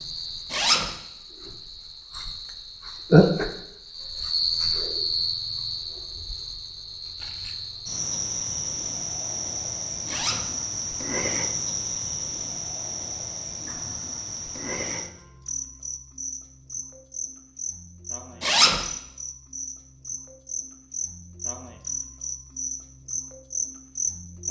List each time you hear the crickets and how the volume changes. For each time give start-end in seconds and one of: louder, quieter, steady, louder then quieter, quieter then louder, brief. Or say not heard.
0.0-24.4 quieter.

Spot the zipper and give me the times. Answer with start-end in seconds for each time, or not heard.
0.5-0.9, 10.1-10.5, 18.4-18.9.